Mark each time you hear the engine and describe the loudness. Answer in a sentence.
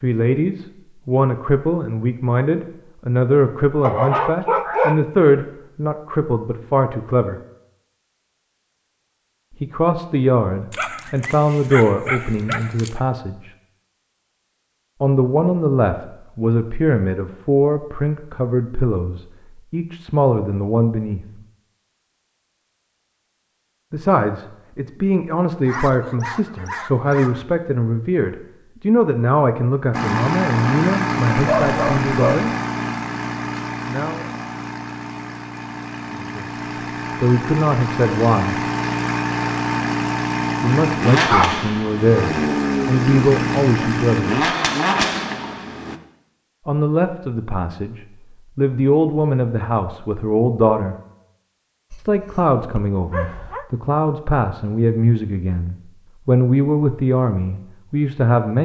You can hear the engine from 29.9 to 46.0 s, getting quieter then louder.